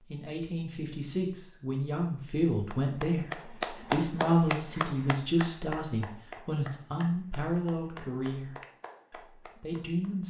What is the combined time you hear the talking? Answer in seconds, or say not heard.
10 s.